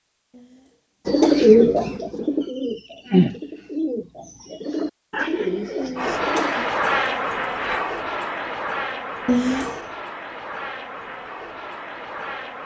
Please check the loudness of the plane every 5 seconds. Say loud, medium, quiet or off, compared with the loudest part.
off, loud, medium.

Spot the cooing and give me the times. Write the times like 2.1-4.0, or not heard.
1.1-6.5.